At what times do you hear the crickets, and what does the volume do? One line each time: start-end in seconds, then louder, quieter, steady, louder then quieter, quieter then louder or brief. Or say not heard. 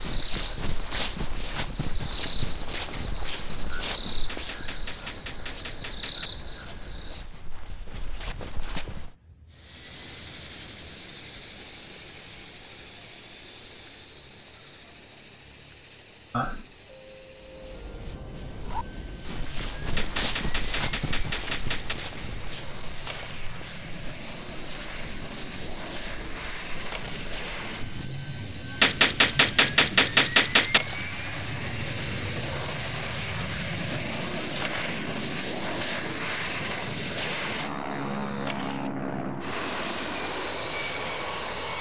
0.0-41.7 louder.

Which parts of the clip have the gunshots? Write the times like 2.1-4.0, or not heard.
4.2-6.3, 19.9-21.9, 28.8-30.8.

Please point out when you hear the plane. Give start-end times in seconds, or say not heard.
9.5-41.7.